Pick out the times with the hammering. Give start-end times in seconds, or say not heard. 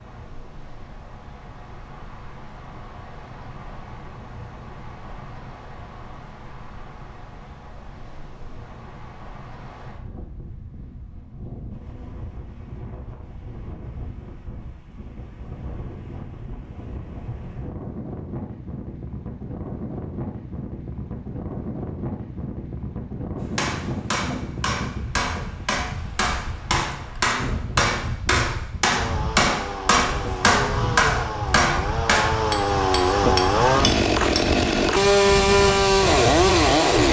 23.6-34.5.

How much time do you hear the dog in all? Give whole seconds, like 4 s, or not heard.
not heard.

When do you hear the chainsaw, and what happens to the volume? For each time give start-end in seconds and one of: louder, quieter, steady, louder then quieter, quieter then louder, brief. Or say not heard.
28.9-37.0 louder.